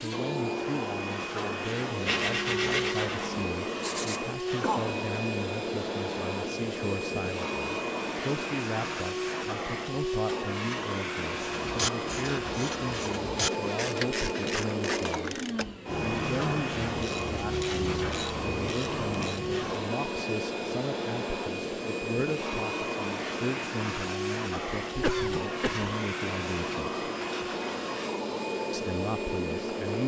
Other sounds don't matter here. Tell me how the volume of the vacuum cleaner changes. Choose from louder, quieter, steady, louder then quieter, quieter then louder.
steady.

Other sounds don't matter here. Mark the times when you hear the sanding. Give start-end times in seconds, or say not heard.
2.0-4.2.